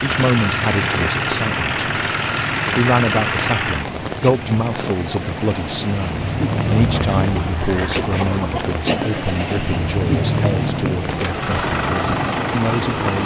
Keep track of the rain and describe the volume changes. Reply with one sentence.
The loudness of the rain stays about the same.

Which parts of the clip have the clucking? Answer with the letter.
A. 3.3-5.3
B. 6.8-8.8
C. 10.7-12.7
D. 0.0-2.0
B.